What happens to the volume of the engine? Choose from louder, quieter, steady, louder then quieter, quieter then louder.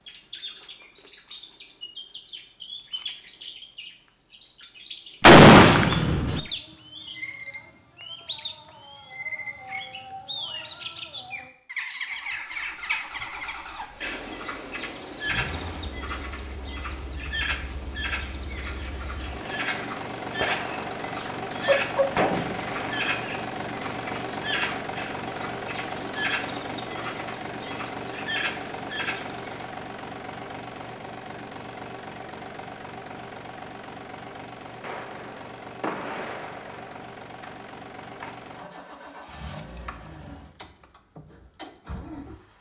louder then quieter.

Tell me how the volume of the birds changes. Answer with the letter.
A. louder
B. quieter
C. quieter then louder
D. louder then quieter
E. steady
E.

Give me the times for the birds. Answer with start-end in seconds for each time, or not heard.
0.0-29.6.